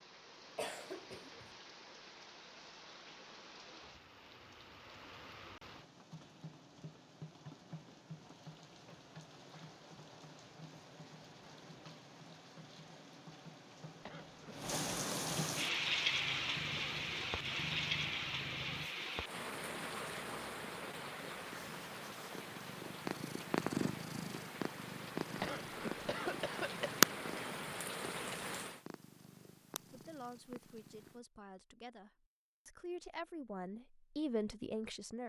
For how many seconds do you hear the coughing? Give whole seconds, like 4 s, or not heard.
3 s.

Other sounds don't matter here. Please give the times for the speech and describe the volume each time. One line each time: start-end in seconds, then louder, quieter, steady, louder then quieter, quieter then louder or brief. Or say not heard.
29.9-35.2 louder.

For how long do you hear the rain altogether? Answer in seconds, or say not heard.
29 s.